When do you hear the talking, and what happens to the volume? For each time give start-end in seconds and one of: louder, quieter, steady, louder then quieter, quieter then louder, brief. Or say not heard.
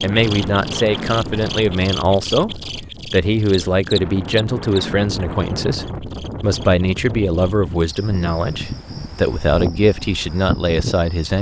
0.0-11.3 steady.